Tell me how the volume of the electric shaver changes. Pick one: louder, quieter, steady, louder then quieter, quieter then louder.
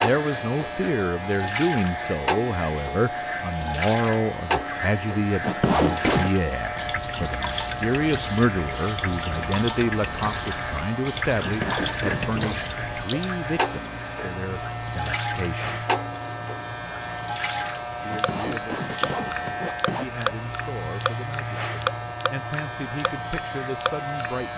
steady.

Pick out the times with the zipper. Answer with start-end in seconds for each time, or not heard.
5.4-6.3, 11.4-12.6, 18.1-20.1.